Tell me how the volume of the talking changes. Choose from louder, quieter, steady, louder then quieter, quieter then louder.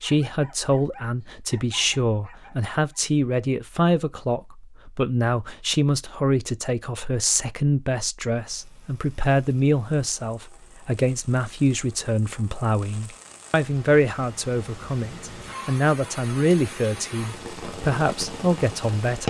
steady.